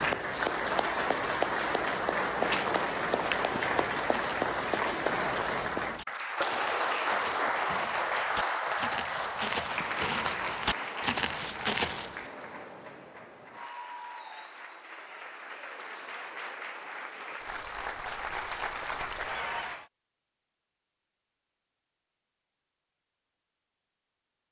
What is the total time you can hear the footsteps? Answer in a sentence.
You can hear the footsteps for 10 seconds altogether.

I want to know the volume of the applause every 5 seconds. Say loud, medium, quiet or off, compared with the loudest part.
loud, loud, medium, medium, off.